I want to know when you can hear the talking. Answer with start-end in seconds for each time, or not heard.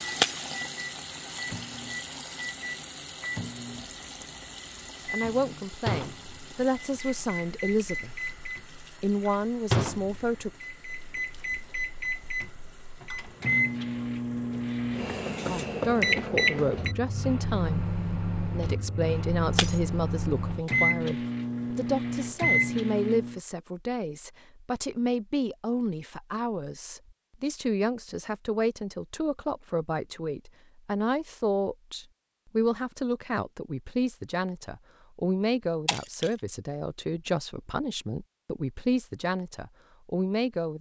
5.0-8.2, 9.0-10.5, 15.4-40.7.